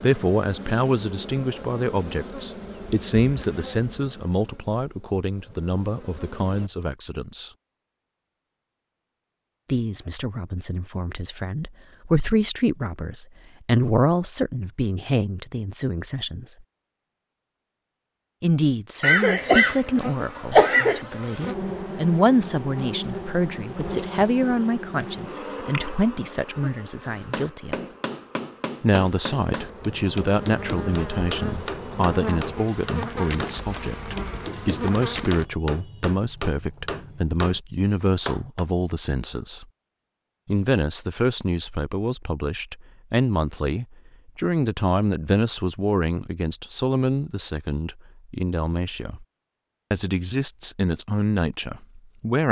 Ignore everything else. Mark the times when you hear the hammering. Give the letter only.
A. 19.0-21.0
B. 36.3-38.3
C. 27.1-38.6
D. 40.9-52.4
C.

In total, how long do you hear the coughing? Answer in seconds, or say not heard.
2 s.